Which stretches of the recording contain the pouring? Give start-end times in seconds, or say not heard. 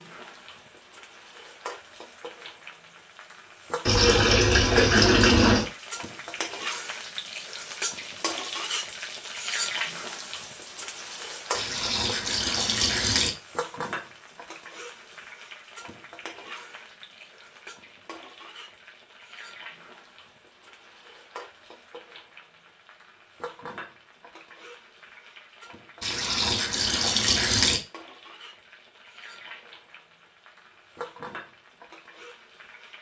3.9-5.7, 11.6-13.3, 26.0-27.8.